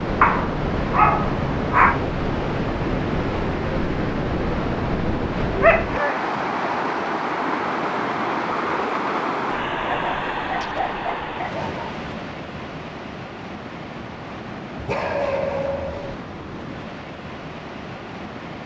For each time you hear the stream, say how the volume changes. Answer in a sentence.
The stream can be heard from 0.0 to 18.6 s, getting quieter.